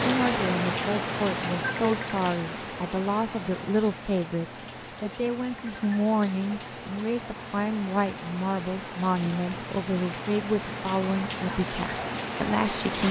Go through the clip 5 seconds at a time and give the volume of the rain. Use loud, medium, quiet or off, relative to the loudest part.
loud, medium, loud.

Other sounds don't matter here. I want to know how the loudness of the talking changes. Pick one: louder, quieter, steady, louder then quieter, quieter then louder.
steady.